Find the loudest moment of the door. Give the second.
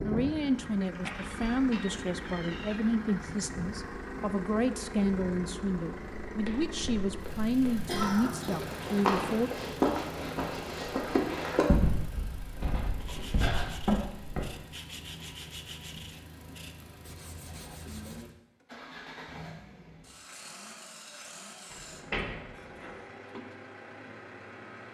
14 s.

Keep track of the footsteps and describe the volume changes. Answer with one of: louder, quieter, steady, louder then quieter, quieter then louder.
louder then quieter.